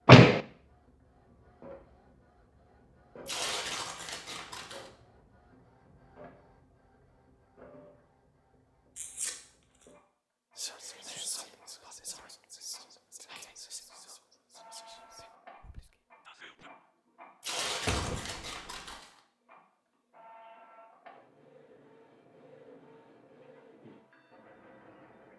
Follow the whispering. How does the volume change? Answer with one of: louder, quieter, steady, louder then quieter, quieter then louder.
quieter.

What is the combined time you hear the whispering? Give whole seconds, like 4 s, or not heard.
6 s.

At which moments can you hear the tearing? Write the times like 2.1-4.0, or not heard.
3.2-4.9, 8.9-9.8, 17.4-19.1.